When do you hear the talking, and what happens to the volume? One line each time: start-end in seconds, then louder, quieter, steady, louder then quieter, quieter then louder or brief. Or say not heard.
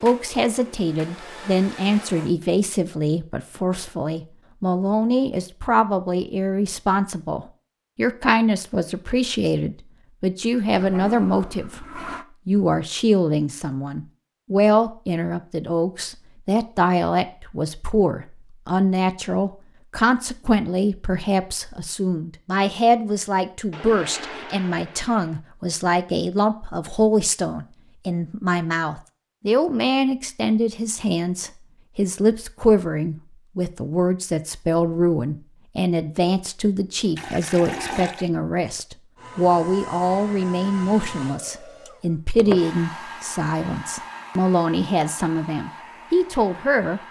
0.0-47.0 steady.